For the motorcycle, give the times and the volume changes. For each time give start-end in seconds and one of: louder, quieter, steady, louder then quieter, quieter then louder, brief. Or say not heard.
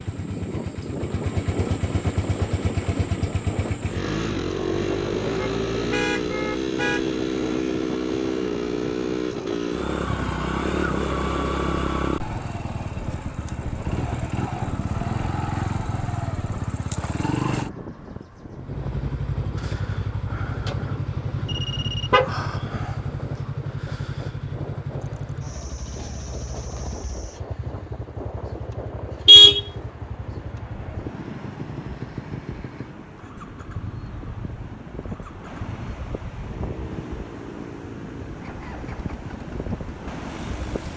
0.0-40.9 quieter.